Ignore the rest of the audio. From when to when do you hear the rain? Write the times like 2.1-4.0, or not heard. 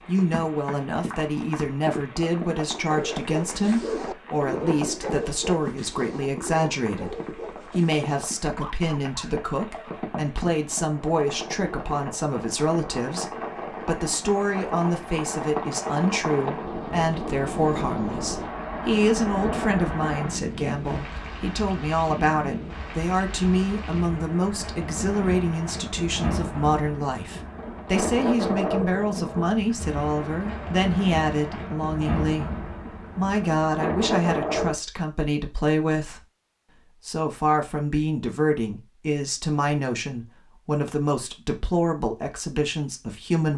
0.0-34.8.